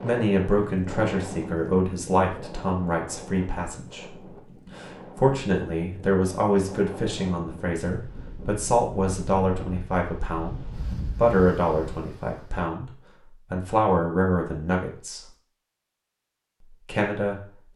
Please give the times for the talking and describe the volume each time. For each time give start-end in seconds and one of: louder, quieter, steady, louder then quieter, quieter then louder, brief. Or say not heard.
0.0-15.2 steady
16.7-17.7 brief.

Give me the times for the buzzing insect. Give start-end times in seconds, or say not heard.
not heard.